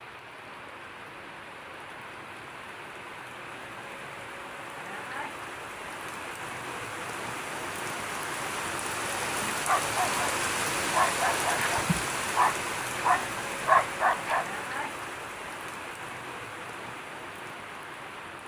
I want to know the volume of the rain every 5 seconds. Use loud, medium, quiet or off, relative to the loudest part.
medium, loud, loud, medium.